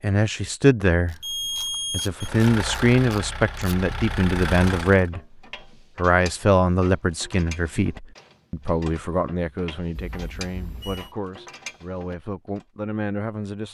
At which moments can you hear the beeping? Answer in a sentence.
The beeping can be heard from 1.2 to 2.3 s and from 9.9 to 11.2 s.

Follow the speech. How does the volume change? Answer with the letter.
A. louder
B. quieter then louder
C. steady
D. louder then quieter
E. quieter
E.